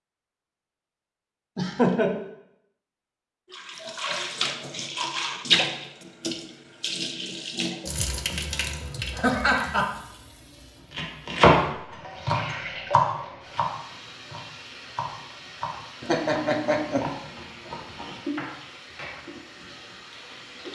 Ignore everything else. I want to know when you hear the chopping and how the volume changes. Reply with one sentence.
The chopping can be heard briefly from 10.9 to 13.7 s; and from 14.3 to 18.6 s, getting quieter.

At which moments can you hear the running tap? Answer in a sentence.
The running tap can be heard from 3.5 to 20.7 s.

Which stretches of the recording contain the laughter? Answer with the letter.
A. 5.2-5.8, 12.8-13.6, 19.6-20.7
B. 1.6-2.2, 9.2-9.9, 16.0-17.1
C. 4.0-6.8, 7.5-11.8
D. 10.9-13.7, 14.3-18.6
B.